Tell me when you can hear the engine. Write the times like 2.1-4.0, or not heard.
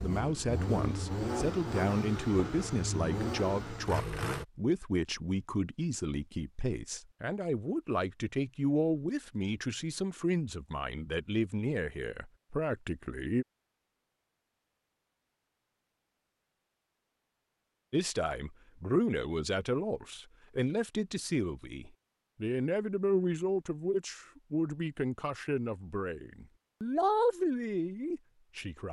0.0-4.5.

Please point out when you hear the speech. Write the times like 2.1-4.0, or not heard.
0.0-13.4, 17.9-28.8.